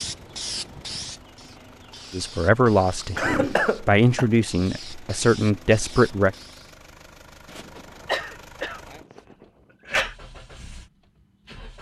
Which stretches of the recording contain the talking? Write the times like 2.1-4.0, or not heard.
2.1-6.3.